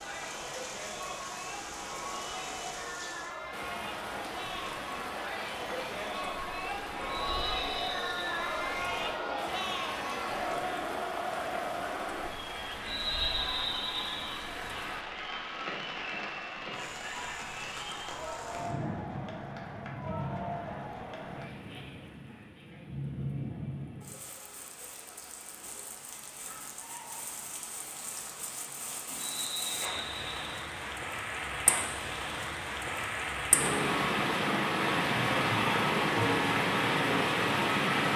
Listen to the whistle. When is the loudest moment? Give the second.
13 s.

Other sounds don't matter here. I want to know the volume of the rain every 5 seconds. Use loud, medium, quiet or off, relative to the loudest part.
quiet, quiet, quiet, quiet, quiet, quiet, medium, loud.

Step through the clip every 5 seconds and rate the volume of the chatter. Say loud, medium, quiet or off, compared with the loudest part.
medium, loud, loud, medium, medium, off, off, off.